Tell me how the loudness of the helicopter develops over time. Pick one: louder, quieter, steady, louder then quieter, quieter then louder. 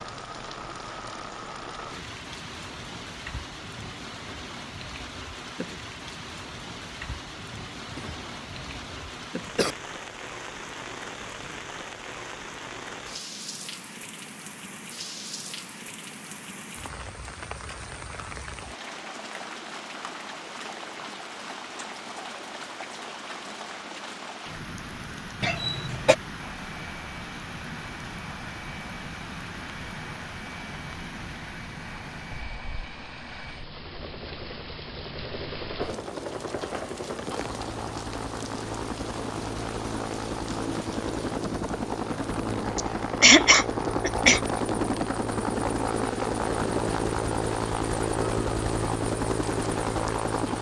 louder.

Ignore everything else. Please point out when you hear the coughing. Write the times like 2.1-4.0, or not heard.
7.9-9.8, 25.4-26.1, 42.8-44.4.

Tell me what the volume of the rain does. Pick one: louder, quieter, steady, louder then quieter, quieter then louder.
steady.